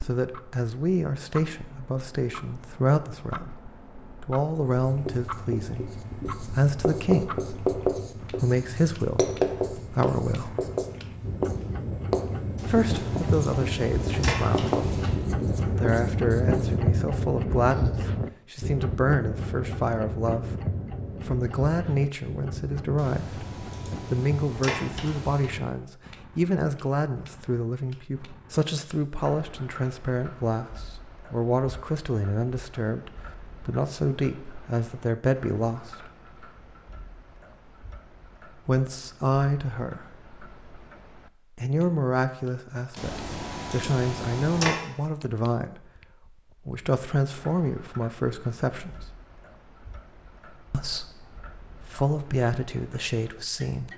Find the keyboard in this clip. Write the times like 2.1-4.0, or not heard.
12.6-15.2, 22.9-25.5, 43.0-44.8.